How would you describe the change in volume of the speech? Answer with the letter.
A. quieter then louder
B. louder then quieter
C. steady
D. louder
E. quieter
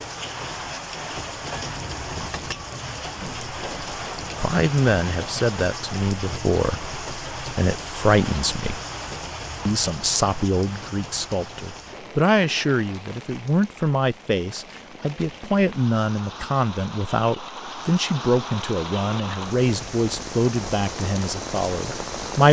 C.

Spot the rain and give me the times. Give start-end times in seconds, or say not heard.
0.0-22.4.